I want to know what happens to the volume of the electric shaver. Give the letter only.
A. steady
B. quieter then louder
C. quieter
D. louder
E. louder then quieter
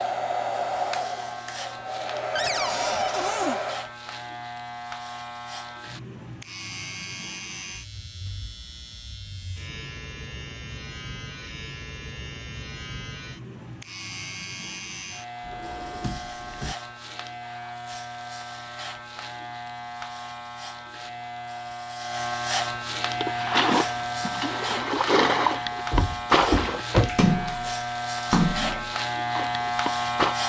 D.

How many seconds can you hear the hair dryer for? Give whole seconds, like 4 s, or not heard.
4 s.